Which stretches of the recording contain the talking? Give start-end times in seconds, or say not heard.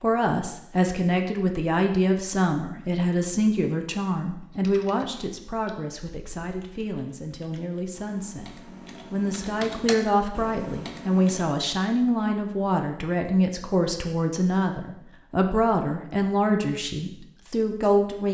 0.0-18.2.